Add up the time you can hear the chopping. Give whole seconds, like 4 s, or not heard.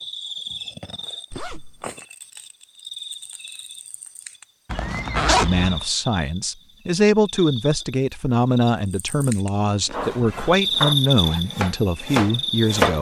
3 s.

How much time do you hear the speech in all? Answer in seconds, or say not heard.
8 s.